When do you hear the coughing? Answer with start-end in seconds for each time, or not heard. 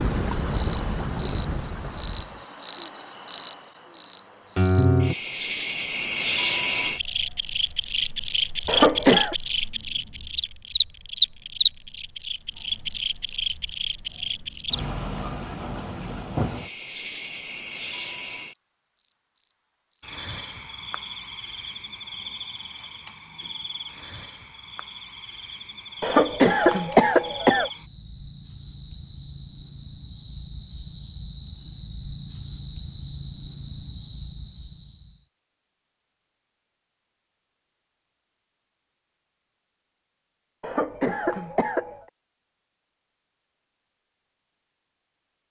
8.7-9.3, 26.0-27.7, 40.6-42.0.